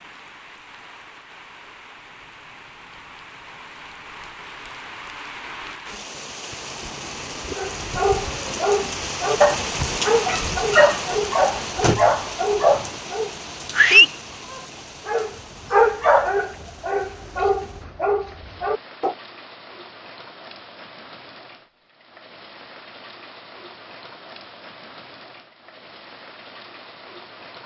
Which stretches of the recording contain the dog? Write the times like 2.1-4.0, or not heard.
7.5-19.1.